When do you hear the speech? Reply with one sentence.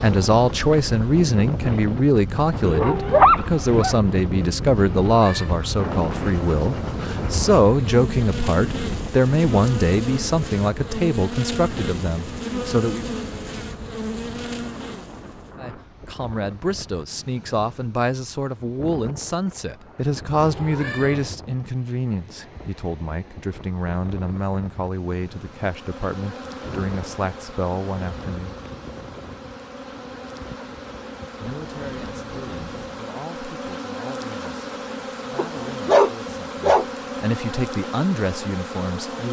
The speech can be heard from 0.0 to 13.1 s, from 15.6 to 28.6 s and from 31.4 to 39.2 s.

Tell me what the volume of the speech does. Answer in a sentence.
The volume of the speech goes down.